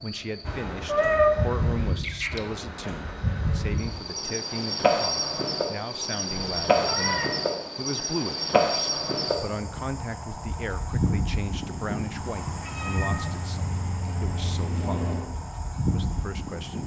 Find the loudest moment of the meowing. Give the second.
1 s.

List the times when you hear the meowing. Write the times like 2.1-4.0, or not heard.
0.7-2.4, 6.3-7.3, 12.6-13.4.